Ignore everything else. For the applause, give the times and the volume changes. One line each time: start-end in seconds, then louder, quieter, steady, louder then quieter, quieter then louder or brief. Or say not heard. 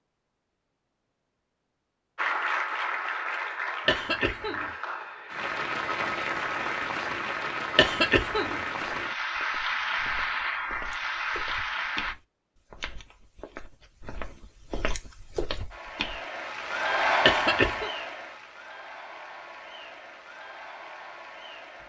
2.1-12.2 steady
15.7-21.8 quieter.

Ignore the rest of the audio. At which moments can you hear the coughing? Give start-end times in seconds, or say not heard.
3.9-4.7, 7.8-8.6, 17.2-17.9.